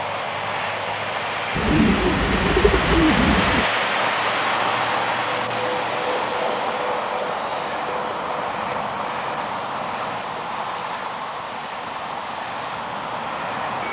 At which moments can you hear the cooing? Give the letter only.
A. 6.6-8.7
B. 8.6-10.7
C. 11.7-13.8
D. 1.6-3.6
D.